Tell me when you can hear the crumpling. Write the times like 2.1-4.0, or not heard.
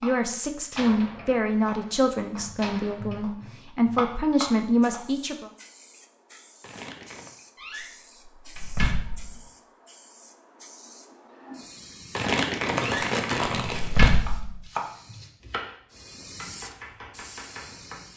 6.6-7.3, 12.2-14.2.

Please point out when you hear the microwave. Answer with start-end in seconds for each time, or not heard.
not heard.